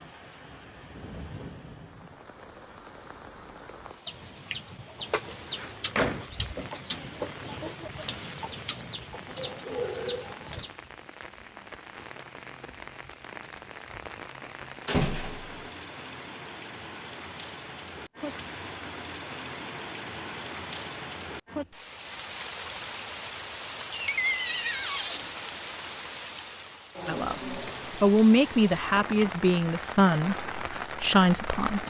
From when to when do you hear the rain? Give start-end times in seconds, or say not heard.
0.0-31.8.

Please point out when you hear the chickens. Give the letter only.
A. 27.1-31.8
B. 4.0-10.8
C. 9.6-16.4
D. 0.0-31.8
B.